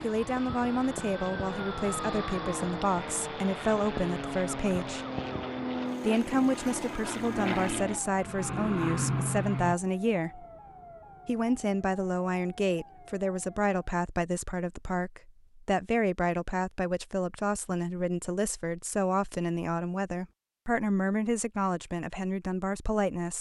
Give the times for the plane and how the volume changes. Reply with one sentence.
You can hear the plane from 0.0 to 9.8 s, getting louder.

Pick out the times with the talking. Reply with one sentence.
You can hear the talking from 0.0 to 5.0 s, from 6.0 to 10.4 s and from 11.2 to 23.3 s.